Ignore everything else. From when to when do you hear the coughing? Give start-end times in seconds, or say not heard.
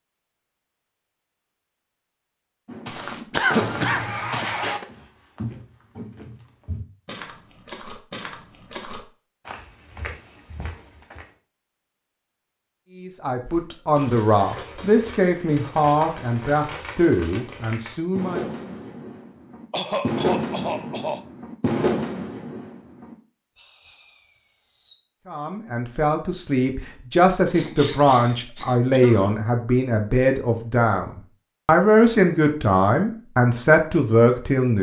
3.3-4.5, 19.7-21.2, 27.5-29.4.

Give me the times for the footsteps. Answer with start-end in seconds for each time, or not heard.
2.9-11.3.